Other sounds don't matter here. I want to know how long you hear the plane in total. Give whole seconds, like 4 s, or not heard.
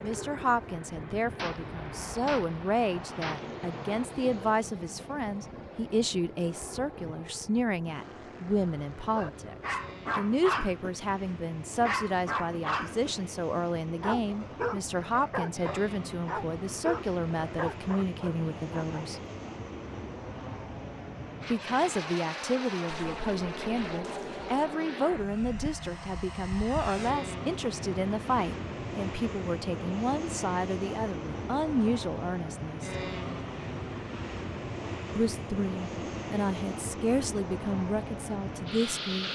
39 s.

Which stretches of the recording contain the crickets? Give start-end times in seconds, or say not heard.
not heard.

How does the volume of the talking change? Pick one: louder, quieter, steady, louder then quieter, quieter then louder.
steady.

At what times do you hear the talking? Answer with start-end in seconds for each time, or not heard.
0.0-19.2, 21.5-32.9, 35.1-39.2.